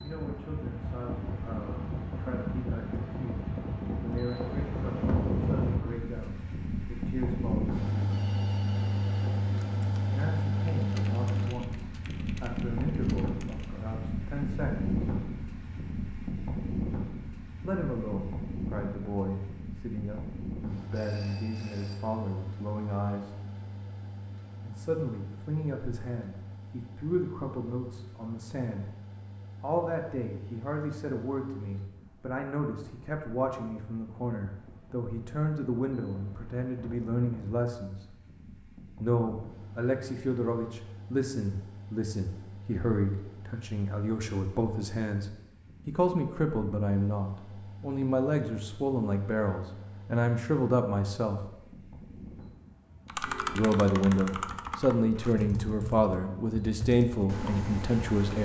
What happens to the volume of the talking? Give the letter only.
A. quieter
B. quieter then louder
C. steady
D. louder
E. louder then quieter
D.